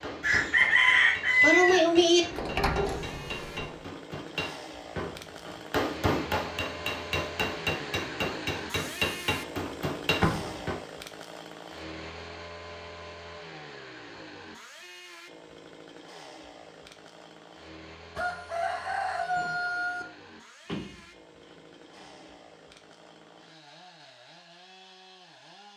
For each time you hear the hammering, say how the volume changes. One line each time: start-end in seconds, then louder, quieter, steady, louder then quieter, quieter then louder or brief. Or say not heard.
0.0-10.8 louder.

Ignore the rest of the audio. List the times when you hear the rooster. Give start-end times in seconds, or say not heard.
0.2-2.2, 18.1-20.1.